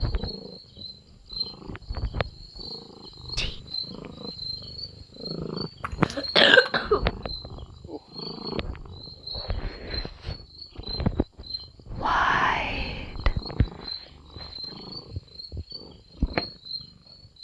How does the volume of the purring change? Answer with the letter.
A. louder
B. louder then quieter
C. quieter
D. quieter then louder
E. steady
A.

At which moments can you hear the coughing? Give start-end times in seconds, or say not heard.
5.8-7.0.